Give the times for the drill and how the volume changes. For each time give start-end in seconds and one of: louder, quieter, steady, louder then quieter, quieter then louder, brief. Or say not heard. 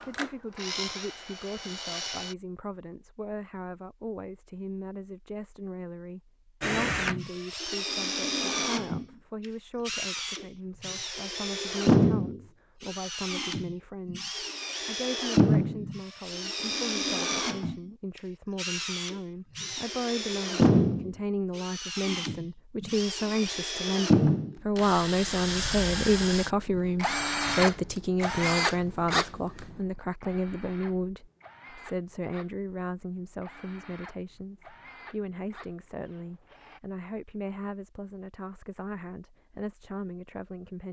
0.0-2.4 brief
6.6-36.8 quieter.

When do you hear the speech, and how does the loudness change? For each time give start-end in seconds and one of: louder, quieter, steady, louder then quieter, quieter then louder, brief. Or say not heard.
0.1-40.8 louder then quieter.